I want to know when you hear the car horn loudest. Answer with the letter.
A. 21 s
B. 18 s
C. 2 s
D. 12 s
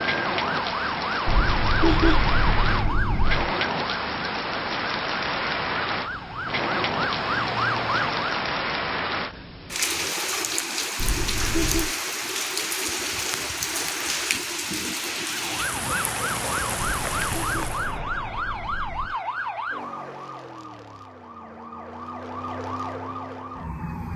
C.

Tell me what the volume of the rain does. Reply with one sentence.
The loudness of the rain stays about the same.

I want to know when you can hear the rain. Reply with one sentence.
The rain can be heard from 0.0 to 18.0 s.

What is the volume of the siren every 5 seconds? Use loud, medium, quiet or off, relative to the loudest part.
loud, loud, off, loud, medium.